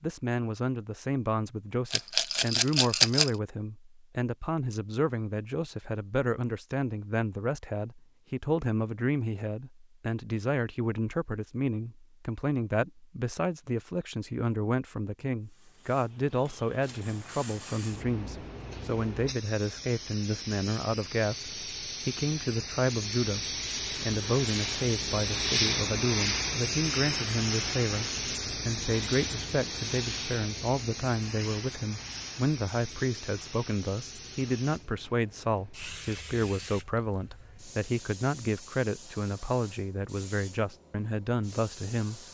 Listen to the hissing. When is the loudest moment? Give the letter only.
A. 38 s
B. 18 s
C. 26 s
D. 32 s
C.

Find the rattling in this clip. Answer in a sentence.
The rattling can be heard from 1.9 to 3.3 s.